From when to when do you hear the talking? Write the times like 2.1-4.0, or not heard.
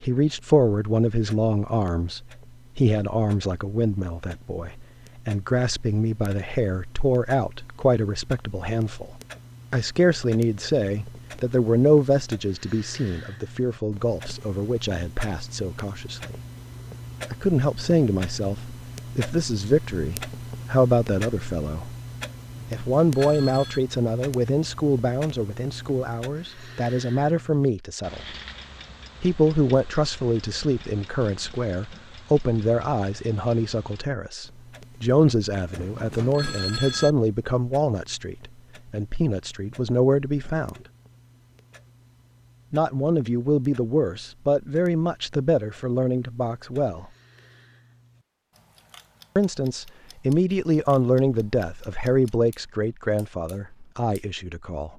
0.0-16.4, 17.3-21.9, 22.7-28.4, 29.2-40.8, 42.7-47.0, 49.4-54.9.